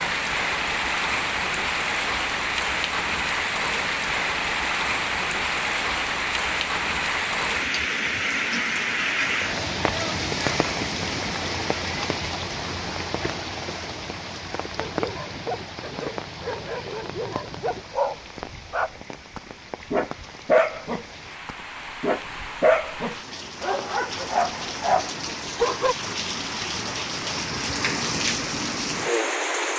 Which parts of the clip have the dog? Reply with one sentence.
The dog can be heard from 14.8 to 25.9 s.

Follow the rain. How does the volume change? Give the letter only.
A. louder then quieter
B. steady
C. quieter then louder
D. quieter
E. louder
C.